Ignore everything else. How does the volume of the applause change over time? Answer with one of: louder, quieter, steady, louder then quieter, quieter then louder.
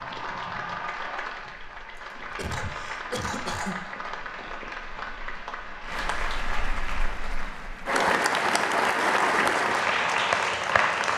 louder.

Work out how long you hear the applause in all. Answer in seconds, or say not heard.
11 s.